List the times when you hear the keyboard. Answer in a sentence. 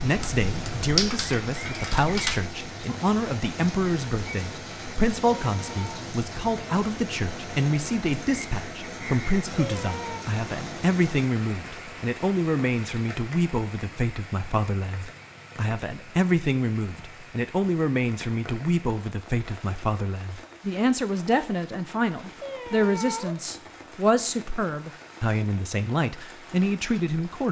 You can hear the keyboard from 0.0 to 2.4 s.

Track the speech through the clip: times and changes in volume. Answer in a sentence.
The speech can be heard from 0.0 to 27.4 s, at a steady volume.